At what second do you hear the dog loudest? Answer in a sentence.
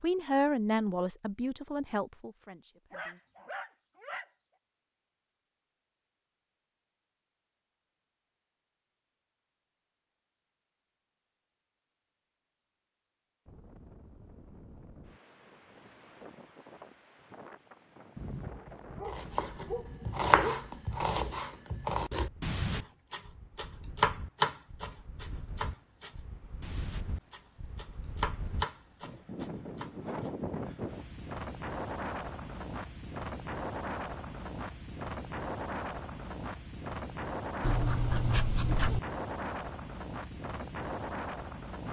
The loudest moment of the dog is at 38 seconds.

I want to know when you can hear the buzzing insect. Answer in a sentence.
The buzzing insect can't be heard in this clip.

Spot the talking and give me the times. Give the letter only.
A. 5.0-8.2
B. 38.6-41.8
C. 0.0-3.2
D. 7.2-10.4
C.